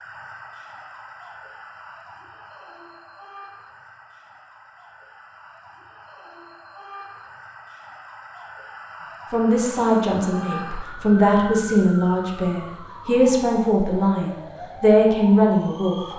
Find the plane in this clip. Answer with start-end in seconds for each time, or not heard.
not heard.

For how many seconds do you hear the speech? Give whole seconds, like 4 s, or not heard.
7 s.